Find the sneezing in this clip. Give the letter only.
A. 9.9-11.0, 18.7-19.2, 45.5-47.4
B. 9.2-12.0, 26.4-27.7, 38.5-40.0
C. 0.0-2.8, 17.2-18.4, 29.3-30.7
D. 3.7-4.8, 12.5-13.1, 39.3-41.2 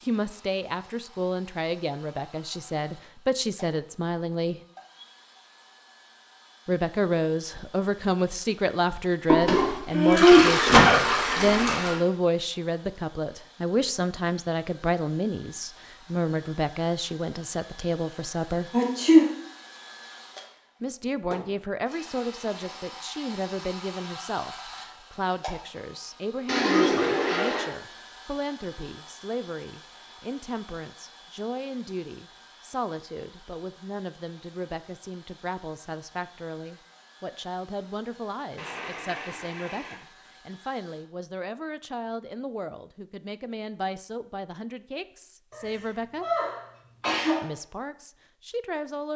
A.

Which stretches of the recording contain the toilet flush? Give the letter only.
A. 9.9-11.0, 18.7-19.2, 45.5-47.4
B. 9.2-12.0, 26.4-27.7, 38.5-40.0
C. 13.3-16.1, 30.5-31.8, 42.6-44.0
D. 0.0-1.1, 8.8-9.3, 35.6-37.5
B.